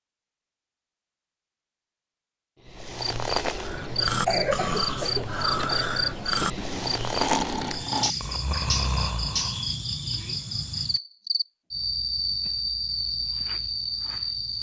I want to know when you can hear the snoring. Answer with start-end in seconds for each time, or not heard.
3.5-9.7.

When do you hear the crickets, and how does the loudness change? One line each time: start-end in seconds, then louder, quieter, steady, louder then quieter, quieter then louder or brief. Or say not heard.
2.6-14.5 steady.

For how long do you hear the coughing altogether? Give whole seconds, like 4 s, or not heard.
2 s.